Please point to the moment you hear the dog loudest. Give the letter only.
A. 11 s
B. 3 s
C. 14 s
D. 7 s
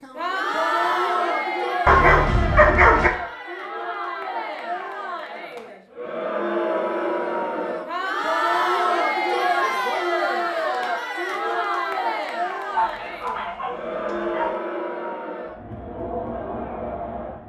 B.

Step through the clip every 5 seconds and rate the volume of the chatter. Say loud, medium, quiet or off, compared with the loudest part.
loud, loud, loud, medium.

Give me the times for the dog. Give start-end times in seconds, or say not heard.
1.9-3.1, 12.7-14.6.